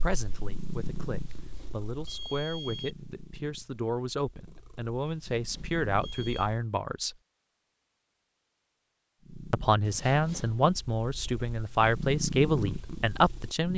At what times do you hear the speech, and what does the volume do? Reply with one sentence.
You can hear the speech from 0.0 to 7.2 s, getting louder; and from 9.5 to 13.7 s, at a steady volume.